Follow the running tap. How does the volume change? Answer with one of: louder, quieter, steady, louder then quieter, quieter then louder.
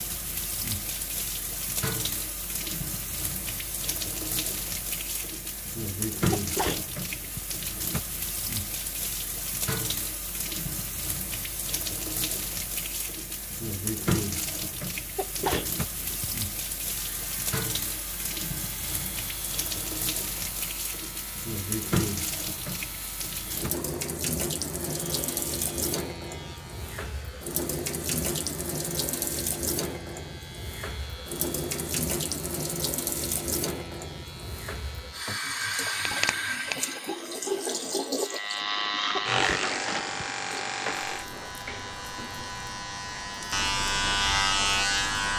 steady.